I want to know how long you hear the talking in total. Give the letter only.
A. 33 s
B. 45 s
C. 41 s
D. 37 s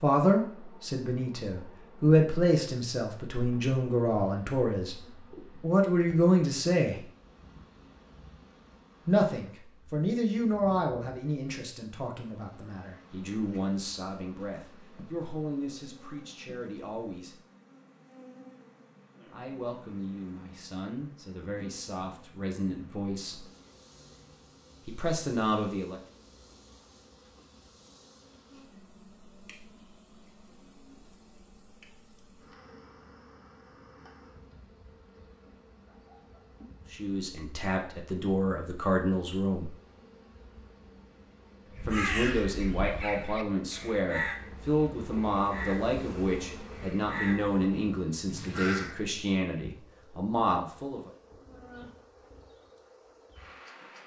A.